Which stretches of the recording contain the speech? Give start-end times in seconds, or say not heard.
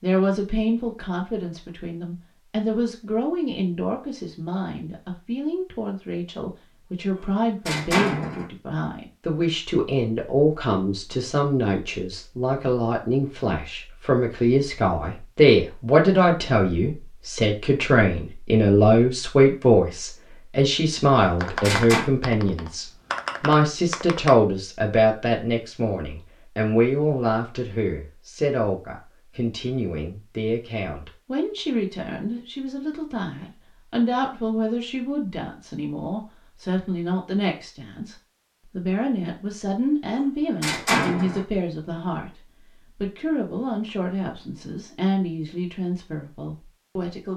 0.0-42.4, 43.0-47.3.